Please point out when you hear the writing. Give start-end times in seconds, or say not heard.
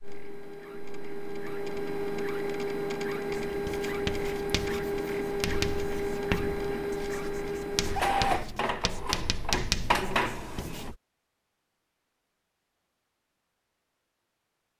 3.5-10.9.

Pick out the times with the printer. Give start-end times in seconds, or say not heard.
0.0-10.9.